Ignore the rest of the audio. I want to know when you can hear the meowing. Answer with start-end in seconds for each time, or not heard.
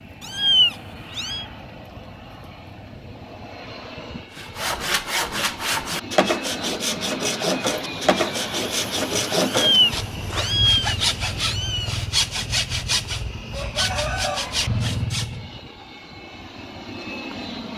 0.2-1.4, 9.4-12.1.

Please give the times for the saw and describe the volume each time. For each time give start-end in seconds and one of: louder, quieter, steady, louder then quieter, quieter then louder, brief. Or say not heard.
4.3-15.6 steady.